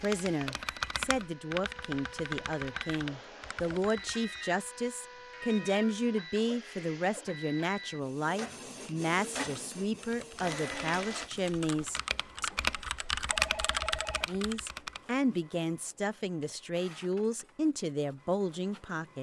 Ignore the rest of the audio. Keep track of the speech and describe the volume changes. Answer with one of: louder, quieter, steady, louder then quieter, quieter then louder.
steady.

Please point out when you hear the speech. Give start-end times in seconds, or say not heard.
0.0-12.5, 14.2-19.1.